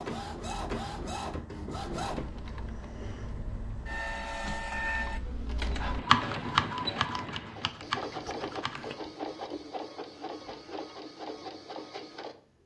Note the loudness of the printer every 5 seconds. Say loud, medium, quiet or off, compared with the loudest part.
loud, loud, medium.